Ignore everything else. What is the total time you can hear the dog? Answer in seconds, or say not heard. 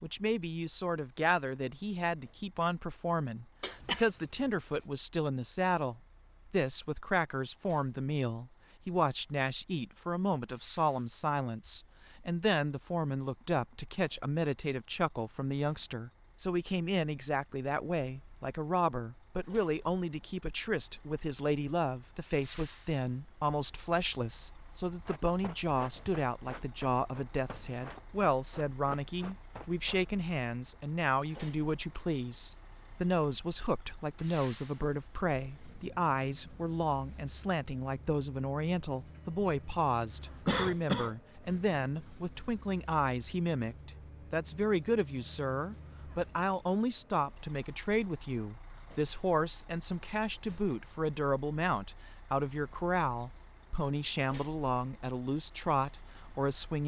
not heard.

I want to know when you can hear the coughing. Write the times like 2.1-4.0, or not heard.
3.6-4.1, 40.5-41.1.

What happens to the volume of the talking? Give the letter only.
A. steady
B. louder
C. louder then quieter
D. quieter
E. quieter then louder
A.